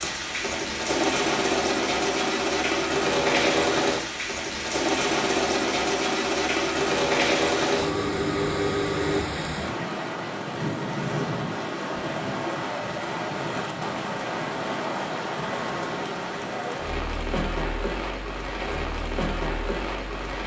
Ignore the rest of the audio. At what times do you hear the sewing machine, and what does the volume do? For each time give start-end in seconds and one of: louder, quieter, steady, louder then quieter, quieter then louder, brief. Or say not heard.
0.0-9.2 steady.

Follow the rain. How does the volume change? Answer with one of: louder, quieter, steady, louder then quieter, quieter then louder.
steady.